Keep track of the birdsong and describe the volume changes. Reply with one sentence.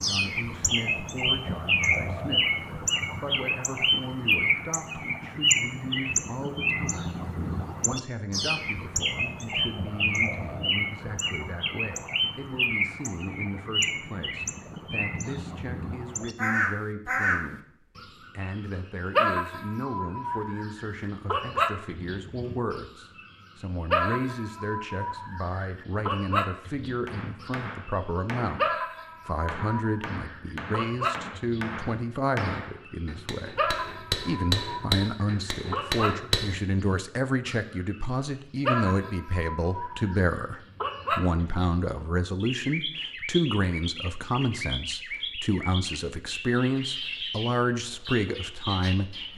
The volume of the birdsong goes down.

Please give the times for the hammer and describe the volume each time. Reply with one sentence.
The hammer can be heard briefly from 27.1 to 28.7 s; and from 29.4 to 36.5 s, getting louder.